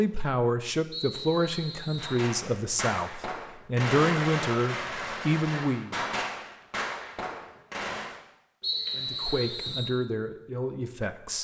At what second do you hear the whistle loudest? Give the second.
9 s.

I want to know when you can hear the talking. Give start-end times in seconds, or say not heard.
0.0-6.0, 8.9-11.4.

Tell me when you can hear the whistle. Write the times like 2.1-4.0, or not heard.
0.9-2.2, 8.6-9.9.